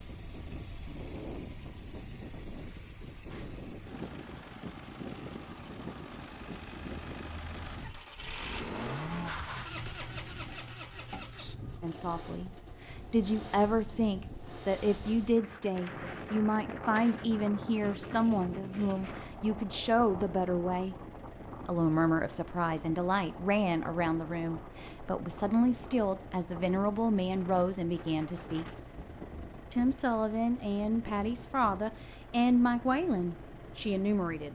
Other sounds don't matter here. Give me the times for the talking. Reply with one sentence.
You can hear the talking from 11.8 to 20.9 s, from 21.6 to 28.6 s and from 29.7 to 34.4 s.